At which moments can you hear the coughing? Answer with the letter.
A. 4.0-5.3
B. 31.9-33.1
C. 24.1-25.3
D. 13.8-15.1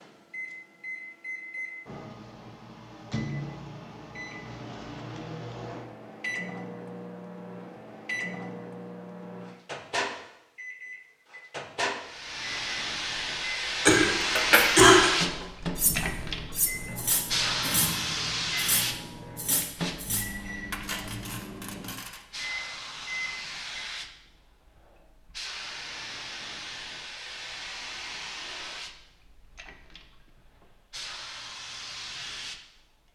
D.